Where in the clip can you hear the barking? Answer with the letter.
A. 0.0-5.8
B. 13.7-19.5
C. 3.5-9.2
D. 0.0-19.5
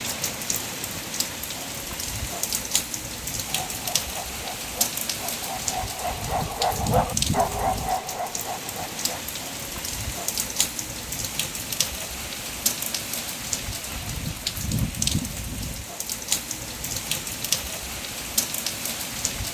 C.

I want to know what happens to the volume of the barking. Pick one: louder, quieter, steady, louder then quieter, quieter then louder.
louder then quieter.